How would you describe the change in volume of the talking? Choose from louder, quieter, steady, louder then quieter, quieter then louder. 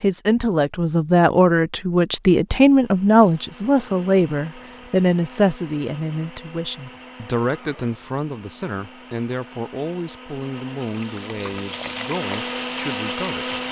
quieter.